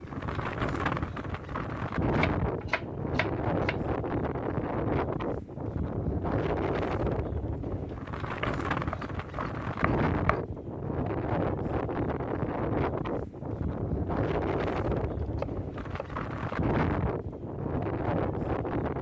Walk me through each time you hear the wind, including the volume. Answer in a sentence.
You can hear the wind from 0.0 to 18.9 s, at a steady volume.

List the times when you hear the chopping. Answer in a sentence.
The chopping can be heard from 2.1 to 3.8 s, from 8.4 to 10.4 s and from 15.2 to 16.6 s.